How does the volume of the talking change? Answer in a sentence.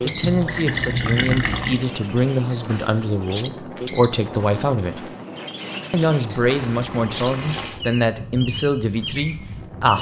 The volume of the talking stays about the same.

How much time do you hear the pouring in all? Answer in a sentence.
You can hear the pouring for 3 seconds altogether.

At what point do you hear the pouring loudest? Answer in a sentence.
The loudest moment of the pouring is at 1 second.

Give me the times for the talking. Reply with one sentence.
You can hear the talking from 0.0 to 5.1 s and from 5.9 to 9.9 s.